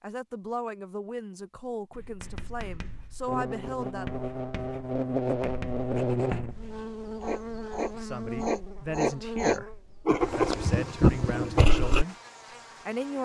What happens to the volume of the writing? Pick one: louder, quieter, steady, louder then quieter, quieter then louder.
louder.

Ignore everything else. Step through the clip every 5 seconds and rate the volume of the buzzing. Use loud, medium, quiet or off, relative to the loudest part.
loud, loud, quiet.